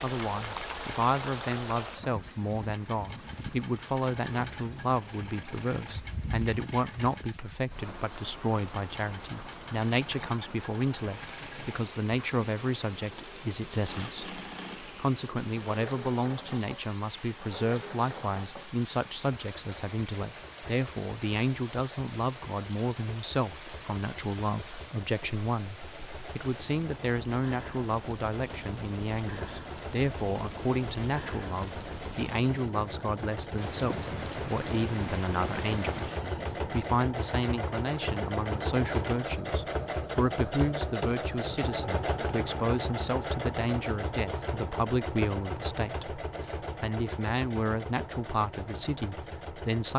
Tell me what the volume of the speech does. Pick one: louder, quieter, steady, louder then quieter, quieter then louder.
steady.